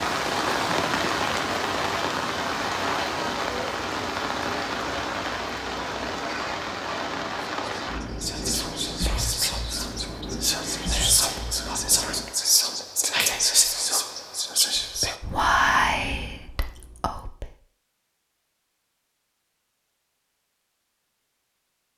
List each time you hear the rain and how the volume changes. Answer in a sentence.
The rain can be heard from 0.0 to 12.3 s, getting quieter.